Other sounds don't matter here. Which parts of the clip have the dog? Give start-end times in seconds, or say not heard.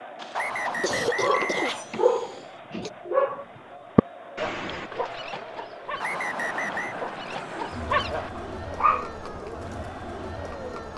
0.7-9.1.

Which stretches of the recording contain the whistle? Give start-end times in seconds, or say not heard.
0.3-1.9, 6.0-7.0.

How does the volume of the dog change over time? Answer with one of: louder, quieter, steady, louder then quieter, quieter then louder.
quieter then louder.